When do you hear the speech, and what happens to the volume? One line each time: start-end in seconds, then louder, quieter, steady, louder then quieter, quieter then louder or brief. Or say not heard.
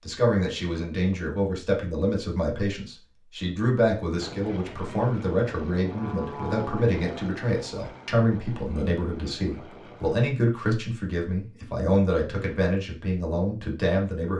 0.0-14.3 steady.